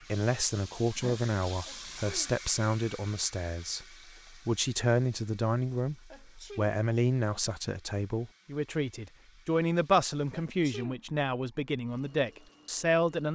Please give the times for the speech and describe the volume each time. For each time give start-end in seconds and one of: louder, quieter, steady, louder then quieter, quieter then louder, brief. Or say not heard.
0.1-13.3 steady.